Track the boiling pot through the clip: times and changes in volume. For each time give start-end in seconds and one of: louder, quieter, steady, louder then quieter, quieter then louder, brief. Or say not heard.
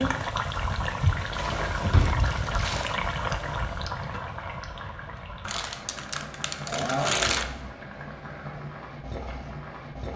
0.0-10.1 quieter.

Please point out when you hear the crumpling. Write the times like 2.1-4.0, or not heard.
1.3-3.0, 5.5-7.5.